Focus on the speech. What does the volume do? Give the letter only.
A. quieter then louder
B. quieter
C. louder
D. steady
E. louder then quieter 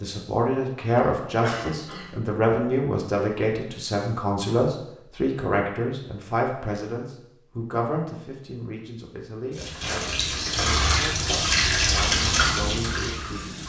B.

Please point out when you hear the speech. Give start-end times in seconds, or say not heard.
0.0-13.6.